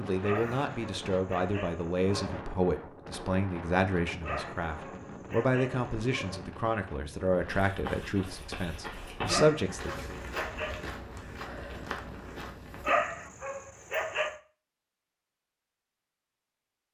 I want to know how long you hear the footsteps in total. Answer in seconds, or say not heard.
6 s.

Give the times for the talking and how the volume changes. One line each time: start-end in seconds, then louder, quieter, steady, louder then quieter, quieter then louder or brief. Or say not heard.
0.0-10.2 steady.